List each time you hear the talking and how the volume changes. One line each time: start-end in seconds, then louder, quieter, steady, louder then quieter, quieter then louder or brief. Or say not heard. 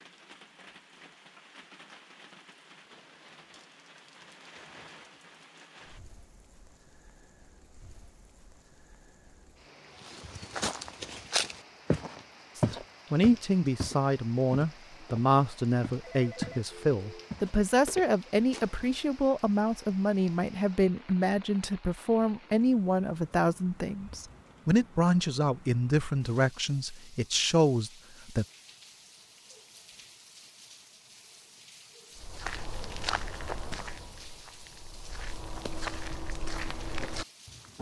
12.6-28.4 steady.